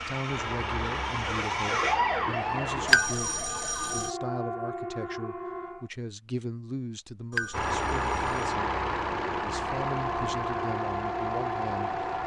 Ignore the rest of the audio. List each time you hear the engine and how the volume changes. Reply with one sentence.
You can hear the engine briefly from 0.2 to 3.0 s; and from 7.5 to 12.2 s, getting quieter.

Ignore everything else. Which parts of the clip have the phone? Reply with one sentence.
You can hear the phone from 2.9 to 4.1 s and from 7.3 to 8.5 s.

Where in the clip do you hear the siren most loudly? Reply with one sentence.
The volume of the siren peaks at 2 seconds.